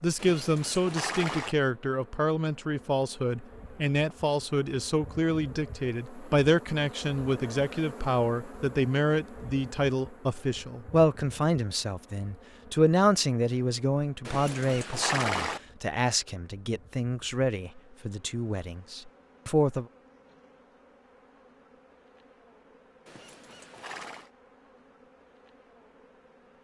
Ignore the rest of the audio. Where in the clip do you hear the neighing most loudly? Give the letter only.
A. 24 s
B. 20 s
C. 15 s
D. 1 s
C.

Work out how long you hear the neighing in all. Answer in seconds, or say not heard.
4 s.